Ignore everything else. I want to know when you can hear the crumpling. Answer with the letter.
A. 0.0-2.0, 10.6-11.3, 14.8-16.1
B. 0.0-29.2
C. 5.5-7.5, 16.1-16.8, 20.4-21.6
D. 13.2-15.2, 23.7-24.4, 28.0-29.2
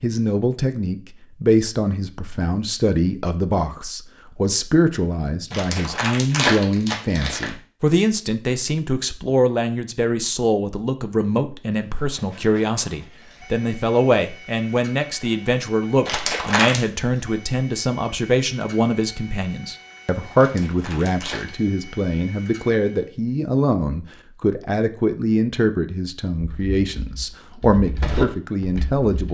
C.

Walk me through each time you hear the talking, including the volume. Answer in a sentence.
The talking can be heard from 0.0 to 29.2 s, at a steady volume.